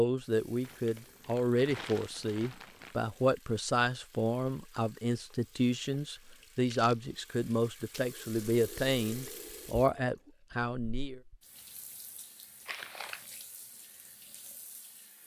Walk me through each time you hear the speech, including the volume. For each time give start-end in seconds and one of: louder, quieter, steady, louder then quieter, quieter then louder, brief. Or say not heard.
0.0-11.2 steady.